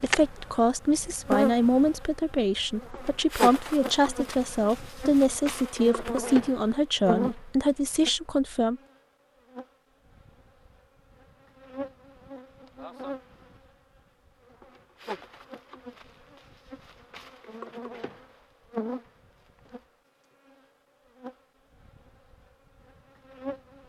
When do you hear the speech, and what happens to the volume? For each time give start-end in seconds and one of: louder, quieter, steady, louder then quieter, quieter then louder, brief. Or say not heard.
0.0-8.8 steady.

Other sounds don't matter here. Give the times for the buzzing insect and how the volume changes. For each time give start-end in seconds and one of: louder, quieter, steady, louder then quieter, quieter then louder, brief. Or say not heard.
0.0-23.8 quieter.